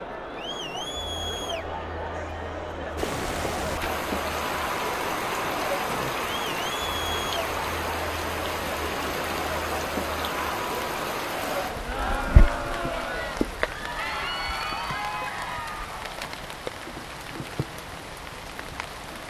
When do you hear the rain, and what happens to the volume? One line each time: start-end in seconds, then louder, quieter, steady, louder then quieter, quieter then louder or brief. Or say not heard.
3.0-19.2 quieter.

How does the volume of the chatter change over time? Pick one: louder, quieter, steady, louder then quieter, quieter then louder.
steady.